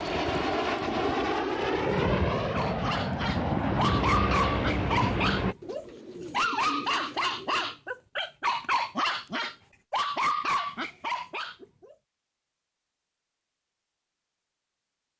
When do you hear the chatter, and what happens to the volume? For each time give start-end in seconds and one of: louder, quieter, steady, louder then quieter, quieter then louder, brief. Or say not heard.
not heard.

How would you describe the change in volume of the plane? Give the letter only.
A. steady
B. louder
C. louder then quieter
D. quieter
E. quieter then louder
A.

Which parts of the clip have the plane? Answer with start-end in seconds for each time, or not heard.
0.0-5.5.